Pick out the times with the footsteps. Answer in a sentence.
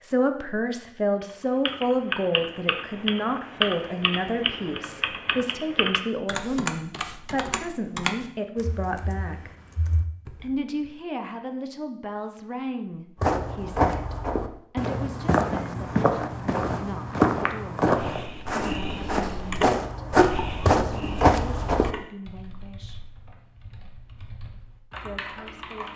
You can hear the footsteps from 13.2 to 21.9 s.